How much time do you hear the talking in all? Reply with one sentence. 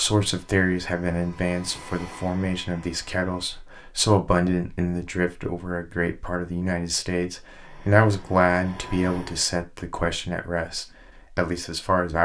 You can hear the talking for 12 seconds altogether.